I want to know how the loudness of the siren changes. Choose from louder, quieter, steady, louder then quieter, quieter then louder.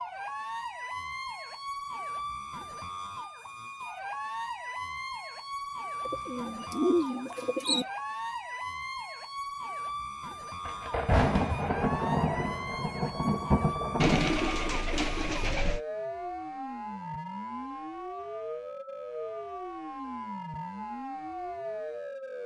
steady.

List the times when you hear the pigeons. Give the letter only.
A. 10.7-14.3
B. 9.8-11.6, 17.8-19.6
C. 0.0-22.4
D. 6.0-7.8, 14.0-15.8
D.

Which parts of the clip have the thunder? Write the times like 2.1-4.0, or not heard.
10.7-14.3.